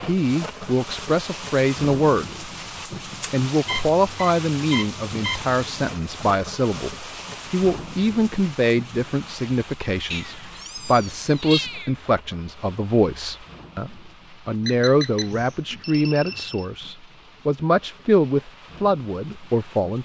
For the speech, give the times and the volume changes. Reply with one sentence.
The speech can be heard briefly from 0.0 to 2.5 s; and from 3.3 to 20.0 s, at a steady volume.